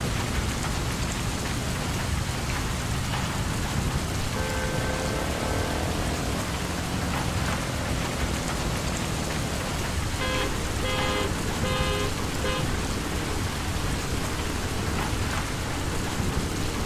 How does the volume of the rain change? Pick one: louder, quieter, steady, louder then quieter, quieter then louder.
steady.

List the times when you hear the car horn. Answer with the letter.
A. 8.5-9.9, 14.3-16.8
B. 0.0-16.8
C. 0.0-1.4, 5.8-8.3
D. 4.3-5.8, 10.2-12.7
D.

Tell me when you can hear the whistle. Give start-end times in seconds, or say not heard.
not heard.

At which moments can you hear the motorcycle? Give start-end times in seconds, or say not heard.
0.0-16.8.